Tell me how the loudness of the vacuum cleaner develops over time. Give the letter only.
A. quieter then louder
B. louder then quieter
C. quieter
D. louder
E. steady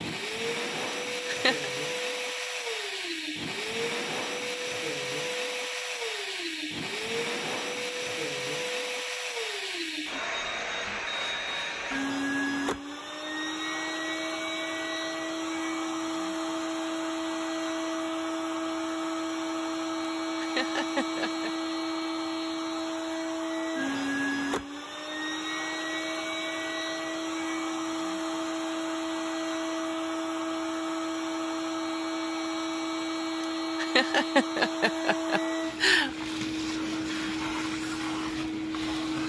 E.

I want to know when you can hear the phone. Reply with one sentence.
You can't hear the phone here.